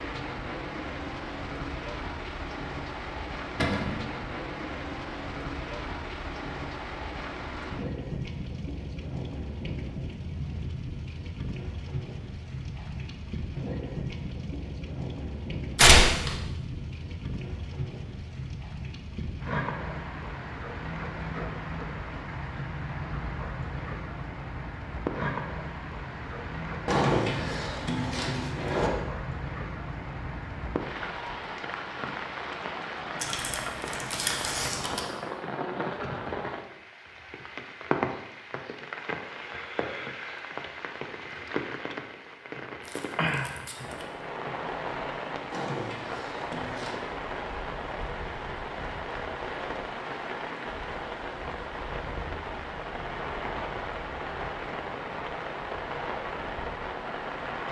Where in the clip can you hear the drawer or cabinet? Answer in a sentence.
You can hear the drawer or cabinet from 3.5 to 4.0 s, from 26.9 to 28.9 s and from 45.5 to 47.0 s.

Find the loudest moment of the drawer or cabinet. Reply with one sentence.
The volume of the drawer or cabinet peaks at 27 seconds.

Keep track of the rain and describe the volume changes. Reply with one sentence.
The loudness of the rain stays about the same.